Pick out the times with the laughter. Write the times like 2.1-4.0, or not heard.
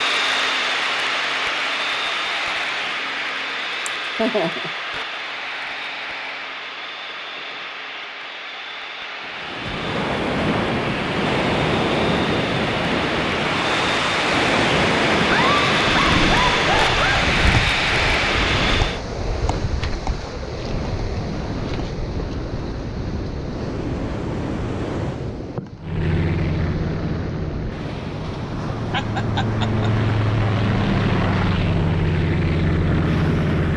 3.9-4.7, 15.3-17.2, 28.9-29.9.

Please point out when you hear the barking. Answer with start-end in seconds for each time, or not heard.
not heard.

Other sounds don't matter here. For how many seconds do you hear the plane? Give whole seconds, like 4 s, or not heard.
27 s.